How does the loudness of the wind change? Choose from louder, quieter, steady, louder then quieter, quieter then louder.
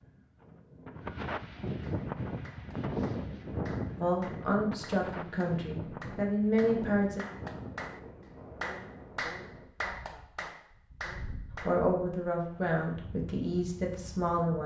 quieter.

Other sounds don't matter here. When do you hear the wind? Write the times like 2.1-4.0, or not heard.
0.0-14.6.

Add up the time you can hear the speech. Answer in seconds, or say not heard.
6 s.